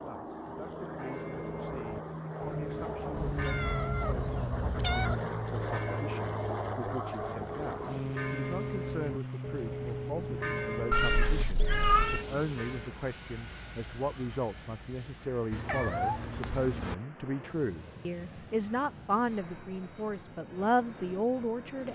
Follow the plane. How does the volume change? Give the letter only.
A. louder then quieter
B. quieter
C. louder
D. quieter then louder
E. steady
B.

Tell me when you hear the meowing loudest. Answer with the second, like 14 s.
12 s.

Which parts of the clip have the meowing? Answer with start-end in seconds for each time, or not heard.
3.1-5.2, 10.9-12.2, 15.5-16.9.